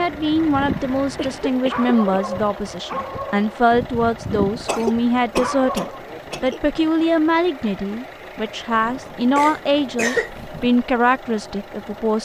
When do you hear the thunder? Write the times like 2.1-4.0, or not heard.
not heard.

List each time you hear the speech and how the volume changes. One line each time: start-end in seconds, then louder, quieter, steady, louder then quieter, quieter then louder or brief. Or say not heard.
0.0-12.2 steady.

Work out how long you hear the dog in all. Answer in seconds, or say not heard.
6 s.